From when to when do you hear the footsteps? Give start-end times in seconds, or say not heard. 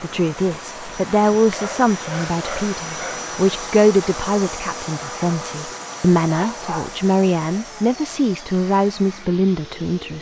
not heard.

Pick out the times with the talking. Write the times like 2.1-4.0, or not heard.
0.0-10.1.